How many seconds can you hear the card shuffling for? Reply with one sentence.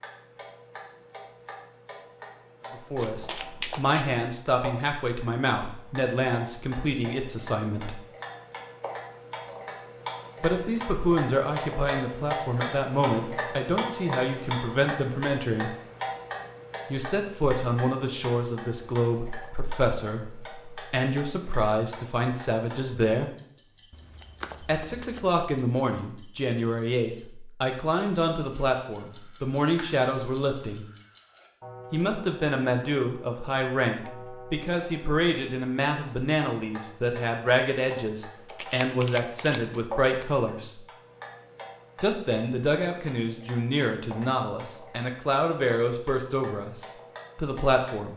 You can hear the card shuffling for 4 seconds altogether.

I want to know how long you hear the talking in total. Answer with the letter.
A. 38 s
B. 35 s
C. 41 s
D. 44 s
A.